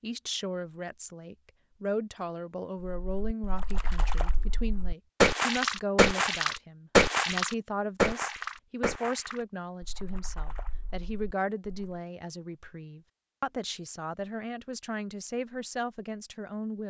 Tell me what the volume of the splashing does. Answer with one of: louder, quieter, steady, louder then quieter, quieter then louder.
louder then quieter.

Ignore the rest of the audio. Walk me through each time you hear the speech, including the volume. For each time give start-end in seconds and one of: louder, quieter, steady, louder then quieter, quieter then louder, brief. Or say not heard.
0.0-16.8 steady.